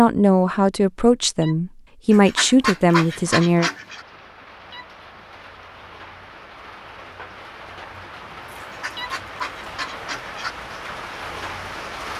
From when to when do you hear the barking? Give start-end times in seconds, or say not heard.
not heard.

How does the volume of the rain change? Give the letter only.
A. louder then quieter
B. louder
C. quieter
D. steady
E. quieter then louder
B.